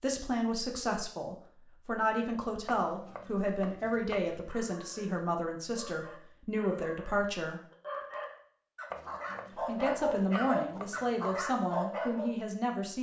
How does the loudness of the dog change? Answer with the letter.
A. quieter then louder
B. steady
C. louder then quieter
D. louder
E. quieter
D.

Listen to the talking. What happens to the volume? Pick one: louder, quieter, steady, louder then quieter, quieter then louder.
steady.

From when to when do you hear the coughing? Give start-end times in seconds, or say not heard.
not heard.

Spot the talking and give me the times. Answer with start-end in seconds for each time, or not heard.
0.0-7.6, 9.7-12.9.